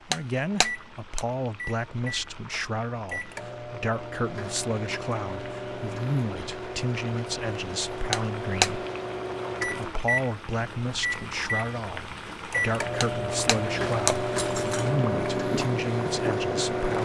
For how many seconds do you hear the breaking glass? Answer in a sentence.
You can hear the breaking glass for 4 seconds altogether.